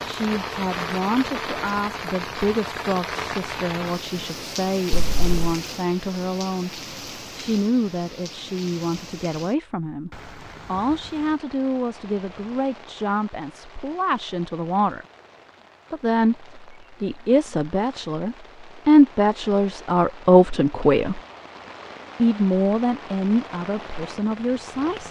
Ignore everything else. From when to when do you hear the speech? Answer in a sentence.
The speech can be heard from 0.1 to 15.1 s, from 15.9 to 21.2 s and from 22.1 to 25.0 s.